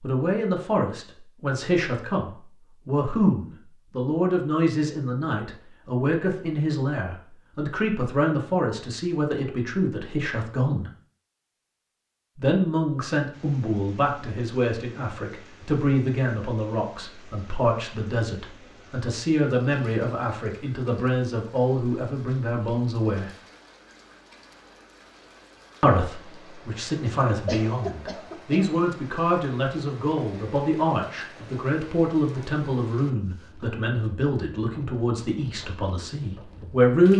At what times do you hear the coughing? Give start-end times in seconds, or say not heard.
27.1-28.8.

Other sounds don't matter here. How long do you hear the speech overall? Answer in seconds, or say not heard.
33 s.